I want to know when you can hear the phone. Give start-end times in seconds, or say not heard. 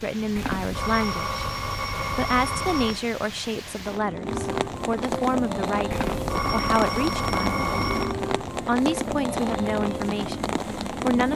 0.3-3.0, 5.9-8.2.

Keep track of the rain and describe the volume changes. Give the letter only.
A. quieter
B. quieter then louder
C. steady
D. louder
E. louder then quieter
D.